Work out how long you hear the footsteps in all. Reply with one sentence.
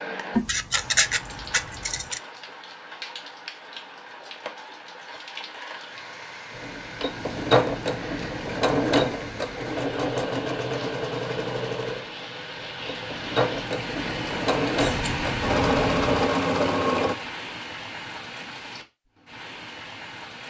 The footsteps can't be heard in this clip.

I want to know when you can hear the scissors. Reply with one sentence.
The scissors can be heard from 0.3 to 2.2 s and from 14.8 to 16.1 s.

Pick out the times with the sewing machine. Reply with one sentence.
You can hear the sewing machine from 6.5 to 17.1 s.